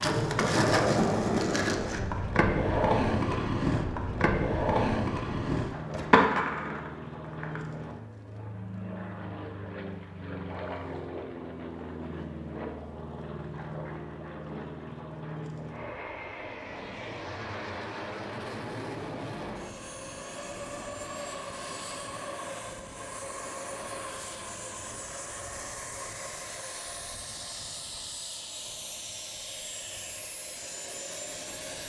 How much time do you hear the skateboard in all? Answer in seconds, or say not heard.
8 s.